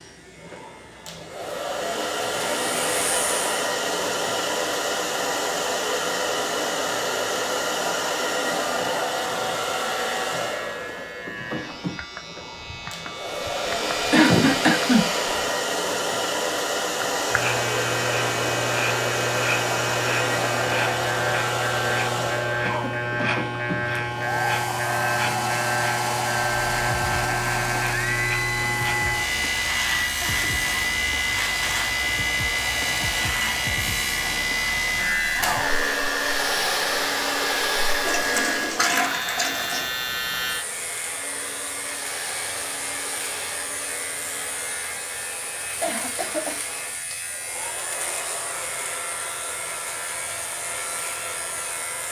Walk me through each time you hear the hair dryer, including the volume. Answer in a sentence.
You can hear the hair dryer from 0.0 to 52.0 s, getting quieter.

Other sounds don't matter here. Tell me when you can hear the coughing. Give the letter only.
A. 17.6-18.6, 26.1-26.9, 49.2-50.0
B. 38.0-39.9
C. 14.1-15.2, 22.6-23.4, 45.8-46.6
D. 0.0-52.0
C.